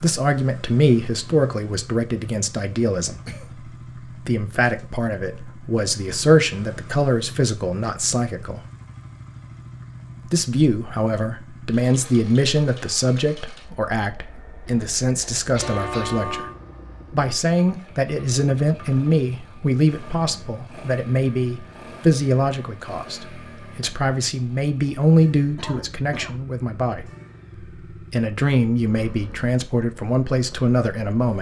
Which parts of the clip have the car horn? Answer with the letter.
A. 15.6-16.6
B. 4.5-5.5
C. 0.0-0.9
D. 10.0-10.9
A.